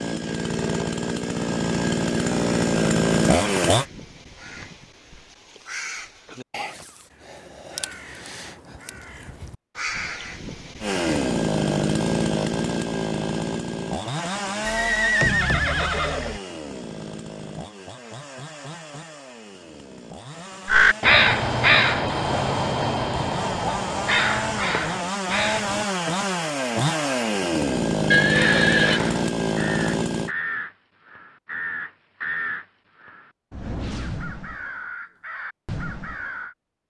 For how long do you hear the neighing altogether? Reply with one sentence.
You can hear the neighing for 3 seconds altogether.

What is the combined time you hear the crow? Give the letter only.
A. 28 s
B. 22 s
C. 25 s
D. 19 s
B.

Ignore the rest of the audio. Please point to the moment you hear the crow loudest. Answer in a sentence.
The volume of the crow peaks at 21 seconds.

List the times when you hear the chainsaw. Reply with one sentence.
You can hear the chainsaw from 0.0 to 3.9 s and from 10.8 to 30.3 s.